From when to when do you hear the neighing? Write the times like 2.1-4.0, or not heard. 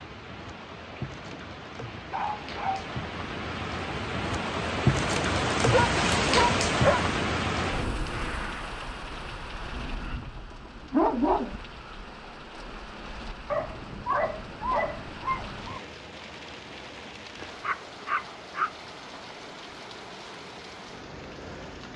not heard.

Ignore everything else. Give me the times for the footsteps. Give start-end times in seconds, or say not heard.
not heard.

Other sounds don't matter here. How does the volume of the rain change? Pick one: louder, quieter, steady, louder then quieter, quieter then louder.
louder then quieter.